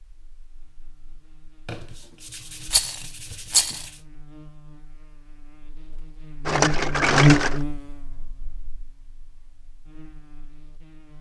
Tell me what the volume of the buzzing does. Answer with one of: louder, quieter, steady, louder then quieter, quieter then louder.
louder then quieter.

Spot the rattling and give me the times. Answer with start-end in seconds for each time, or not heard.
2.6-3.9, 6.5-7.6.